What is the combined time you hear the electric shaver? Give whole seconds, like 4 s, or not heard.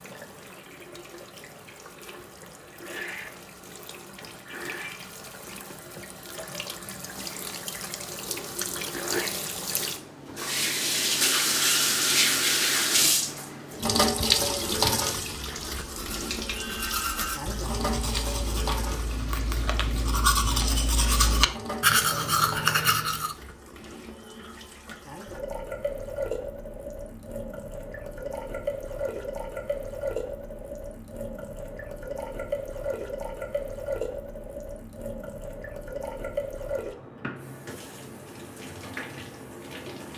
not heard.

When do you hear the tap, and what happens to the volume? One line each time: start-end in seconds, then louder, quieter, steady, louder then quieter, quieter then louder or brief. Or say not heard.
0.0-40.1 louder then quieter.